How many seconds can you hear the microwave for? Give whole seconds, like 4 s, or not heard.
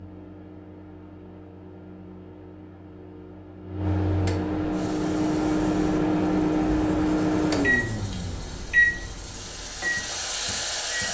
11 s.